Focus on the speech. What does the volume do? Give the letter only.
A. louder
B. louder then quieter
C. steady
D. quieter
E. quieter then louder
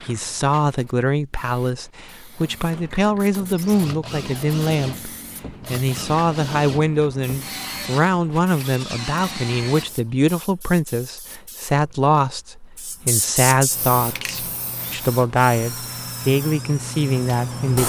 C.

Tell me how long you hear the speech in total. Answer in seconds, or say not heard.
18 s.